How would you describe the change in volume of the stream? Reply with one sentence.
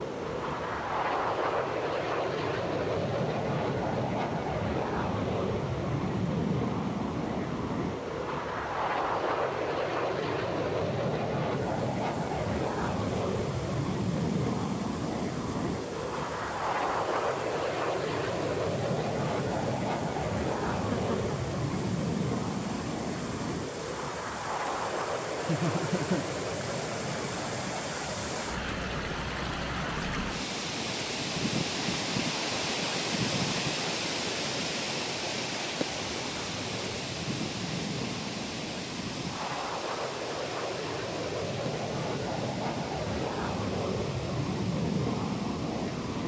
The volume of the stream goes up, then down.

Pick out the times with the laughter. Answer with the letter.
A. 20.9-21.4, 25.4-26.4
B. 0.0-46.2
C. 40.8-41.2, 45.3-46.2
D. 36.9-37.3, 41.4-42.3
A.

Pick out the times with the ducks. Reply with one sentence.
You can't hear the ducks here.